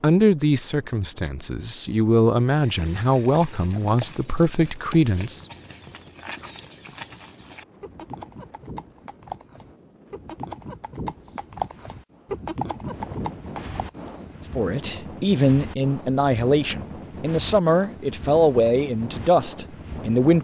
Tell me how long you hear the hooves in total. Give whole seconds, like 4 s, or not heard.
12 s.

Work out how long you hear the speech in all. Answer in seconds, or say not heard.
11 s.